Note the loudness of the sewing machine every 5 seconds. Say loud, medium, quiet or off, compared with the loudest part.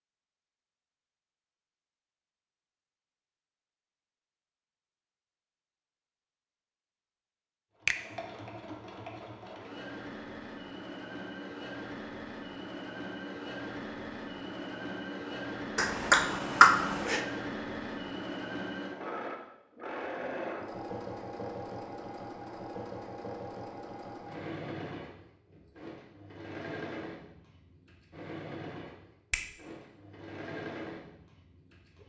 off, medium, loud, loud, loud, medium, medium.